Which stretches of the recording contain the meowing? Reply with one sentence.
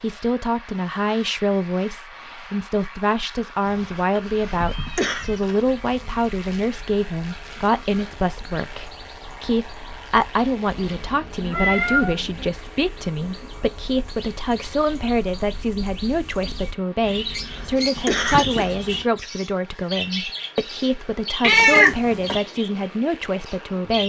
You can hear the meowing from 3.6 to 5.7 s, from 10.8 to 12.4 s and from 21.4 to 22.4 s.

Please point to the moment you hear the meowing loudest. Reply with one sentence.
The loudest moment of the meowing is at 22 seconds.